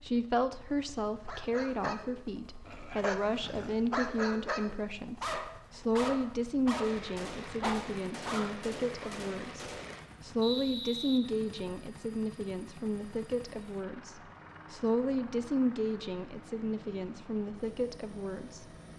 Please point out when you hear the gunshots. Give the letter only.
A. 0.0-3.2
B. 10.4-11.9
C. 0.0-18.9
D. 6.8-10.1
D.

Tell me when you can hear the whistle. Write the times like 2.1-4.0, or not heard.
10.4-11.9.